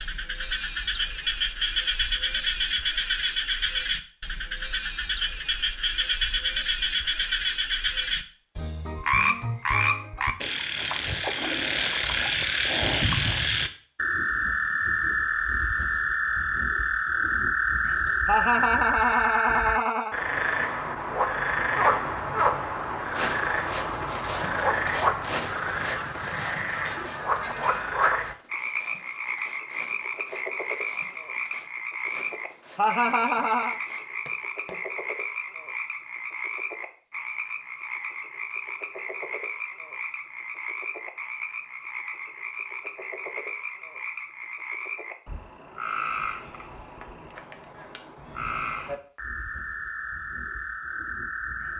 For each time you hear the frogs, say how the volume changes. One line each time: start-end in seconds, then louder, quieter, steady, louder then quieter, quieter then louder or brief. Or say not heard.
0.0-51.7 quieter.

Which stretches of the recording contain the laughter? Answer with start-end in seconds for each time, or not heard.
18.2-20.1, 32.8-33.8.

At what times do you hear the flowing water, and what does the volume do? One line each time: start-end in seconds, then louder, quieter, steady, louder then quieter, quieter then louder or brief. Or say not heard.
not heard.